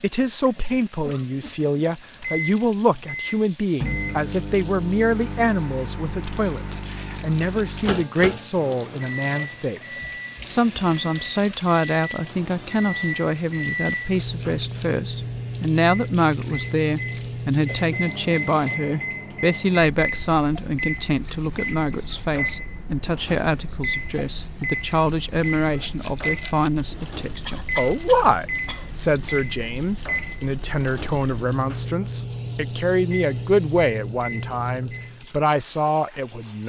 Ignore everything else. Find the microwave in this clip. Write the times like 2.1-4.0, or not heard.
2.2-35.2.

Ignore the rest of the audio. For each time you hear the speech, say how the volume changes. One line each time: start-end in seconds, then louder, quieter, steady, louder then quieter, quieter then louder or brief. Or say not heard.
0.0-36.6 steady.